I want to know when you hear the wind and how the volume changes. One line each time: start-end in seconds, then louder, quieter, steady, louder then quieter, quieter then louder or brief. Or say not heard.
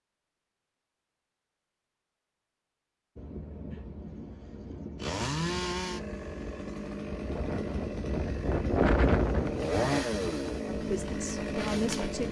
3.1-12.2 louder then quieter.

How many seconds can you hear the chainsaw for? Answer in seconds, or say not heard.
7 s.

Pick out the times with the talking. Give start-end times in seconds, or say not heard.
10.8-12.2.